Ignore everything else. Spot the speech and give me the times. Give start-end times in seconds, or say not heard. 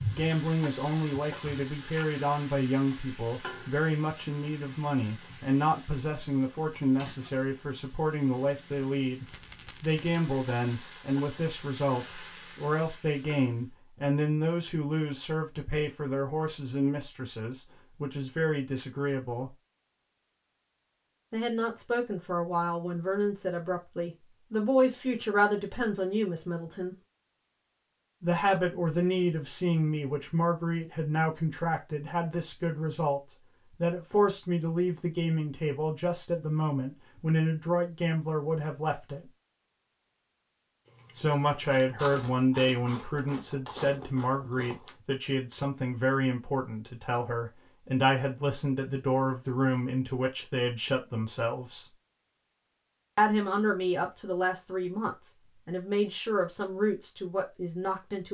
0.0-19.6, 21.3-26.9, 28.2-33.2, 33.8-39.3, 41.1-51.9, 53.1-58.2.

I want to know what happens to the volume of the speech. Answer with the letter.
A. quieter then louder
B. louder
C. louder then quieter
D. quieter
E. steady
E.